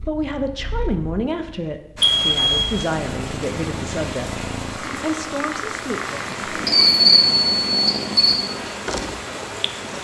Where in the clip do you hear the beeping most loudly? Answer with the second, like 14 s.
7 s.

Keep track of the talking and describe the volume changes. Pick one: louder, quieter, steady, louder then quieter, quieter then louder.
quieter.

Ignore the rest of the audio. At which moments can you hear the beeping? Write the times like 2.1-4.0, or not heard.
2.0-2.7, 6.2-8.4.